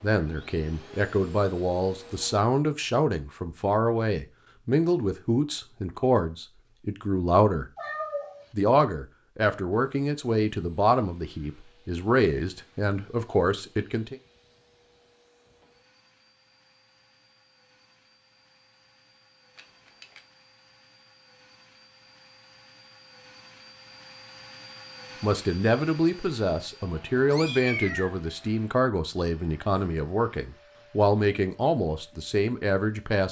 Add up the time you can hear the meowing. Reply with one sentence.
The meowing can be heard for 2 seconds in total.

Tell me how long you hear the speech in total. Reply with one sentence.
The speech can be heard for 21 seconds in total.